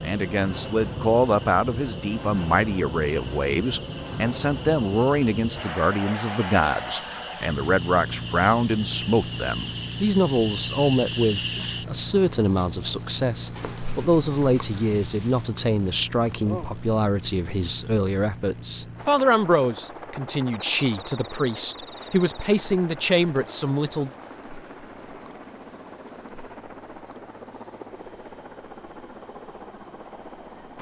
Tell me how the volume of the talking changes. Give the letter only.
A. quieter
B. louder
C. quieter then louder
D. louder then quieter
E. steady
E.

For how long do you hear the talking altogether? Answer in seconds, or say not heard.
24 s.